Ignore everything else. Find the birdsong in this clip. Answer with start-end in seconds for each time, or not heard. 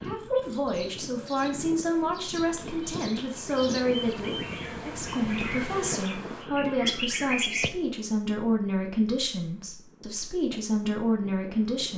0.0-7.7.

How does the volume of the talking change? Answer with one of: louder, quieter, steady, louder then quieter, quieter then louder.
steady.